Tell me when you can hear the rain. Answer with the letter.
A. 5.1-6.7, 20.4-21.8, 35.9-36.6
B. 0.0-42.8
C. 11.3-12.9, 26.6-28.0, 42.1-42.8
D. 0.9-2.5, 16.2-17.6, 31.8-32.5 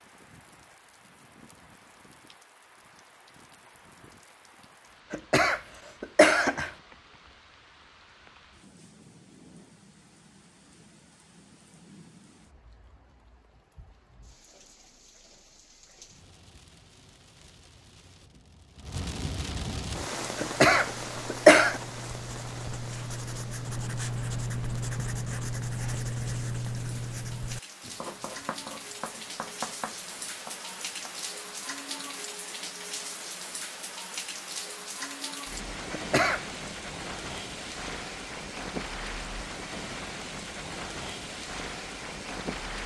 B.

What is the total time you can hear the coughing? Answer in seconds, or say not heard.
4 s.